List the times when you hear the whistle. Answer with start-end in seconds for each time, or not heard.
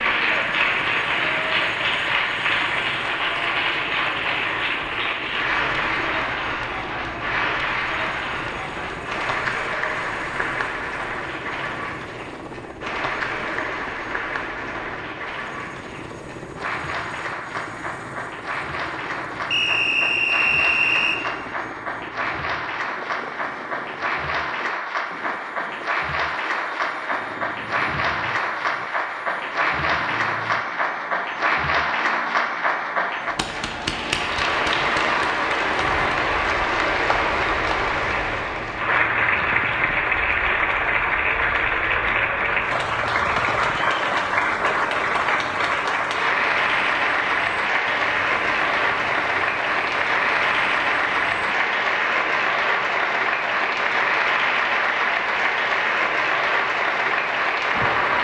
19.5-21.2.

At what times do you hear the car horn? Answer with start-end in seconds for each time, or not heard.
not heard.